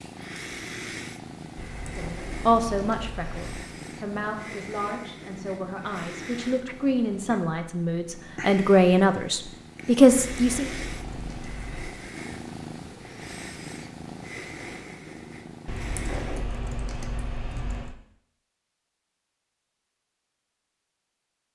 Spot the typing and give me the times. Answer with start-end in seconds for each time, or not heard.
1.6-3.7, 10.1-12.1, 15.7-17.9.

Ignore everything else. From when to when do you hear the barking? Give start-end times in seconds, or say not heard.
not heard.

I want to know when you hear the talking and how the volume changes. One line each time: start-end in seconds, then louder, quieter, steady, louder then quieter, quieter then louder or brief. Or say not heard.
1.9-10.7 quieter then louder.